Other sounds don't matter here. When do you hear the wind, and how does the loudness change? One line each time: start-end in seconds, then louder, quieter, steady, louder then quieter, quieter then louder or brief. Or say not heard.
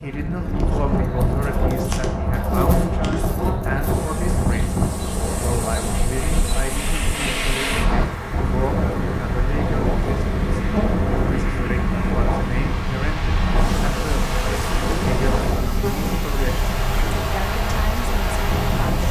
0.0-19.0 steady.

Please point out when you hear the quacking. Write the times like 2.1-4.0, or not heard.
not heard.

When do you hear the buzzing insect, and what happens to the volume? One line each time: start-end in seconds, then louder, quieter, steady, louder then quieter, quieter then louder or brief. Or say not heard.
0.0-19.0 steady.